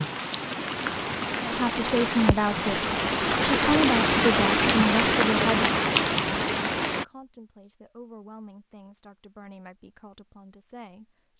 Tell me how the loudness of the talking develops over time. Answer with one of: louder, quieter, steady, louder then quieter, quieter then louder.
quieter.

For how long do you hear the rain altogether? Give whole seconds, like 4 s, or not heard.
7 s.